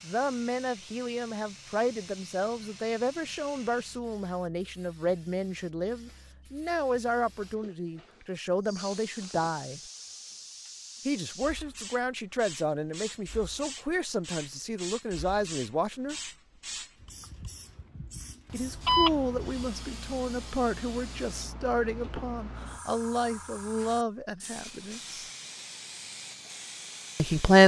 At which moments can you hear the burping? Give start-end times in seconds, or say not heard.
not heard.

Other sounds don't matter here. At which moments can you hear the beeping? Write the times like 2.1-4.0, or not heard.
18.5-19.6.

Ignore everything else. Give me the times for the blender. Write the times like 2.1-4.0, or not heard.
not heard.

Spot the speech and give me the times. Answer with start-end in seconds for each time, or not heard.
0.0-9.8, 11.1-16.1, 18.5-25.2, 27.1-27.6.